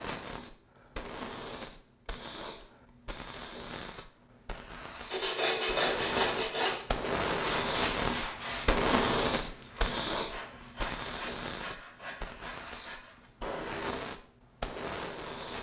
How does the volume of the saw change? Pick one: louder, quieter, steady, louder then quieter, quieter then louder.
quieter.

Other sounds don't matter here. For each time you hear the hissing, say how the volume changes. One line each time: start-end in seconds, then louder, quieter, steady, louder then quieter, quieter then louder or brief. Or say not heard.
0.0-15.5 louder then quieter.